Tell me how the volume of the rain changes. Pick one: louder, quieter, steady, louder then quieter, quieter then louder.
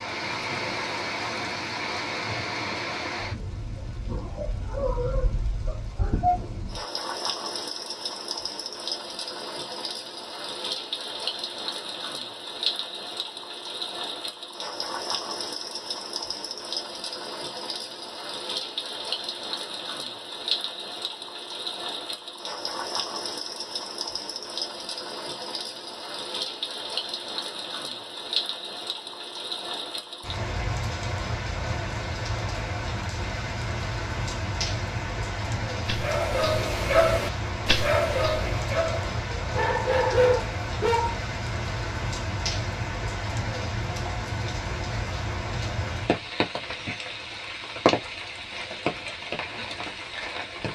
steady.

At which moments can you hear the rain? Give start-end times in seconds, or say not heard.
0.0-50.7.